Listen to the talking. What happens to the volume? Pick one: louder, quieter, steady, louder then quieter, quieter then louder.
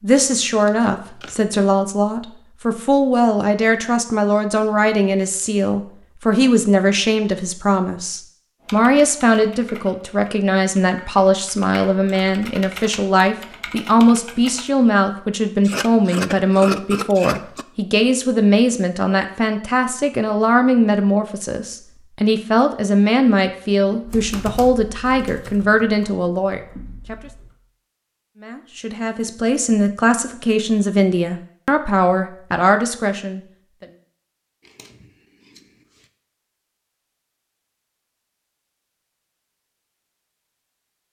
steady.